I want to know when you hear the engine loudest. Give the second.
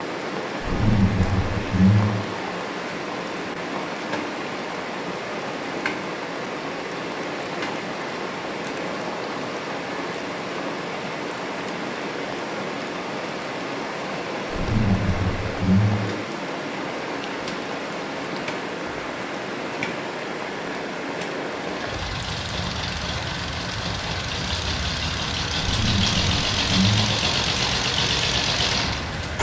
28 s.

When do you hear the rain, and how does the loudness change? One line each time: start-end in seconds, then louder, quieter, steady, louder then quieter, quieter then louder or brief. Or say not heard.
0.0-29.3 steady.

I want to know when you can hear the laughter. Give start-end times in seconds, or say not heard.
0.6-2.2, 14.5-16.1, 25.6-27.1.